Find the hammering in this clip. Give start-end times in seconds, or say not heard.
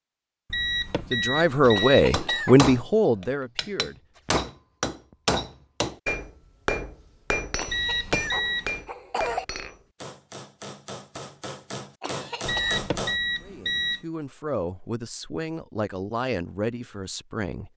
1.6-13.2.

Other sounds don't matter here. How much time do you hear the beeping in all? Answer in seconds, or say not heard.
5 s.